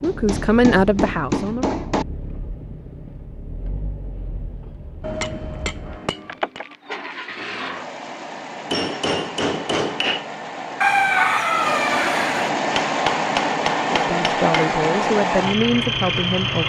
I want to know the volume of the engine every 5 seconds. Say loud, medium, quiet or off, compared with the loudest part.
quiet, medium, loud, loud.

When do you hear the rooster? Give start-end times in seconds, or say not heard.
10.8-12.5.